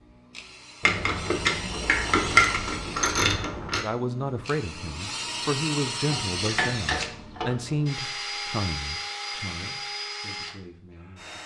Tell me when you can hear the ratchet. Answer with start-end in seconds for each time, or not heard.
0.8-3.9, 6.1-7.6.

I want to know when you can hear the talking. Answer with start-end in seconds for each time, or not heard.
3.8-11.4.